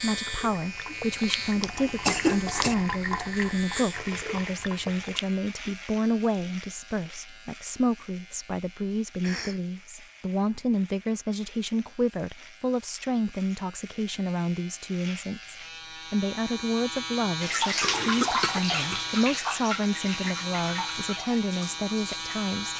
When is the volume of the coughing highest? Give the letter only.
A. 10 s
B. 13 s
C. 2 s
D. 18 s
C.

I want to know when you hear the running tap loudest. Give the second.
18 s.